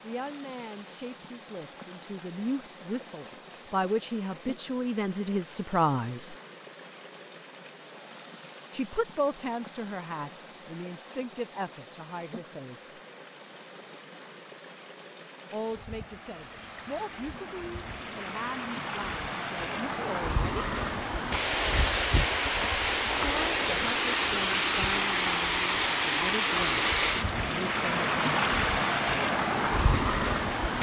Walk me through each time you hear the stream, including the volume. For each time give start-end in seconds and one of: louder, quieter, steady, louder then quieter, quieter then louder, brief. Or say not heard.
0.0-30.7 louder.